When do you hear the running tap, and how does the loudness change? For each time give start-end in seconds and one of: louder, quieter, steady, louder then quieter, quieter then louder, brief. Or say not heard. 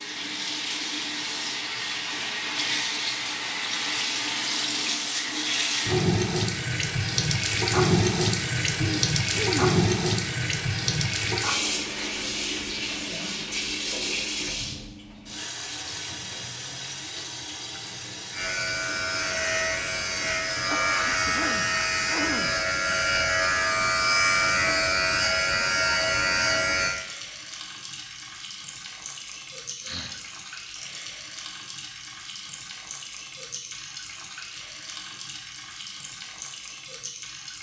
0.0-37.5 quieter.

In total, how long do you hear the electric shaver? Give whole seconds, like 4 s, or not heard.
9 s.